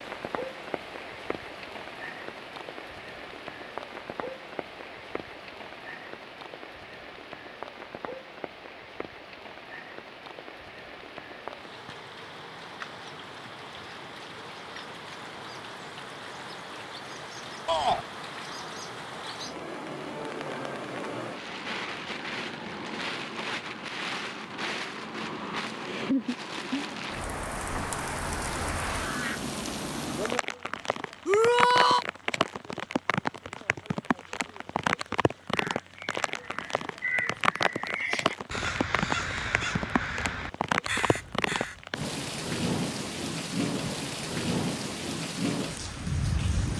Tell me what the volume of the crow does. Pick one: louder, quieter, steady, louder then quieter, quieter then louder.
louder.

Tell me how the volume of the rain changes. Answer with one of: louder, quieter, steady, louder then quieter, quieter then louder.
louder.